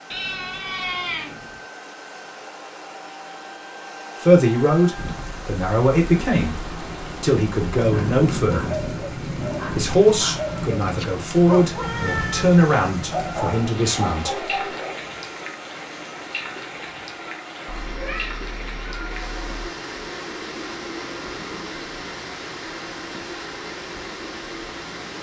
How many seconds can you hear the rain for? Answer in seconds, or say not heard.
20 s.